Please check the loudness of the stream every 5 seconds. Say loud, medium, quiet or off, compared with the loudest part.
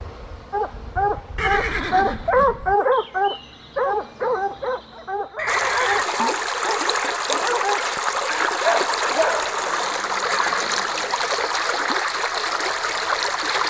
off, loud, loud.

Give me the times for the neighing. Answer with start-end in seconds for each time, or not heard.
1.4-2.8, 5.3-6.1, 10.2-11.1.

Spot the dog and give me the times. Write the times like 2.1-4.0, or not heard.
0.5-9.7.